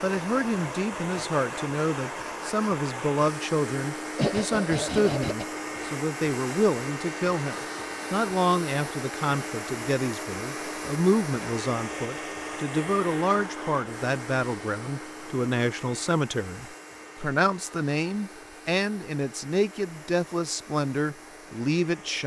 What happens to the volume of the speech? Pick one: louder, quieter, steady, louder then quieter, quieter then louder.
steady.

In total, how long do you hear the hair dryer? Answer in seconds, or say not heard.
22 s.